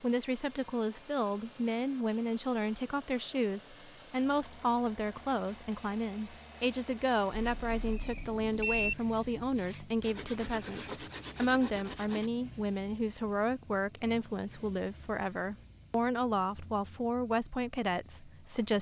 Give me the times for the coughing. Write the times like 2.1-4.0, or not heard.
not heard.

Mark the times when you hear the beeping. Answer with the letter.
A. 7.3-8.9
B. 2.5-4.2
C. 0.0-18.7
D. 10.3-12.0
A.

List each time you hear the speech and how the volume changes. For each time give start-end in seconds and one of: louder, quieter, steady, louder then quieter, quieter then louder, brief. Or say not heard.
0.0-18.7 steady.